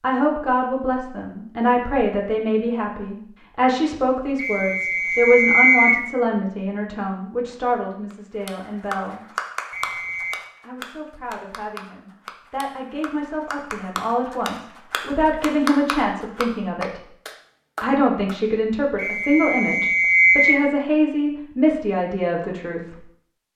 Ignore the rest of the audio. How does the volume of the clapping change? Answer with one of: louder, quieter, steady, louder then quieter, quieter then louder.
quieter then louder.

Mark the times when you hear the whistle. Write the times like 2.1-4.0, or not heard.
4.3-6.0, 9.7-10.4, 18.9-20.6.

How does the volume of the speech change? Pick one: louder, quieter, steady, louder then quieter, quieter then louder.
quieter then louder.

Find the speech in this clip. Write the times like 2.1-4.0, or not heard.
0.0-9.2, 10.6-17.1, 17.8-23.0.